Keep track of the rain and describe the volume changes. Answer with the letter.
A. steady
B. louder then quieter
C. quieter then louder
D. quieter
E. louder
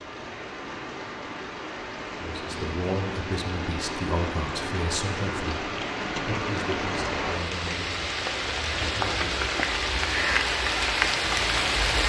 E.